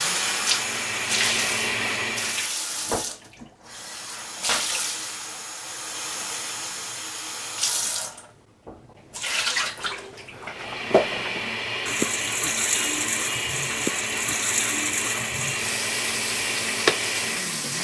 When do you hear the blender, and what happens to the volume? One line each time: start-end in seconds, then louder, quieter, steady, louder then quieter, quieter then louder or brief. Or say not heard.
0.0-2.5 brief
10.4-17.7 steady.